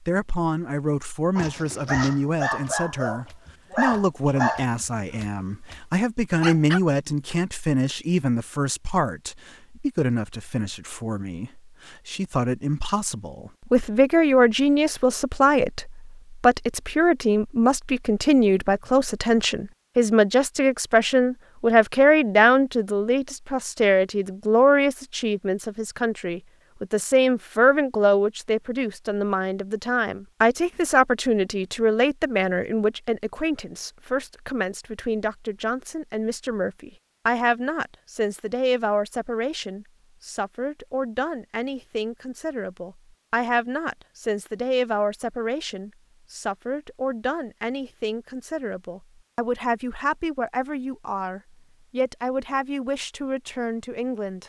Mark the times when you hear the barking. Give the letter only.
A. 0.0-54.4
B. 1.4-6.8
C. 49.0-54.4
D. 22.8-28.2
B.